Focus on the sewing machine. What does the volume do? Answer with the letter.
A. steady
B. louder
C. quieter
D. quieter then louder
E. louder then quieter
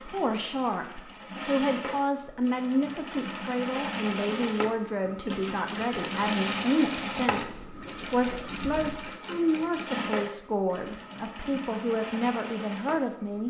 E.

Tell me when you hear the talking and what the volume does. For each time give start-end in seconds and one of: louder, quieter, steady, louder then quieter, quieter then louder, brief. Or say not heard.
0.0-13.4 steady.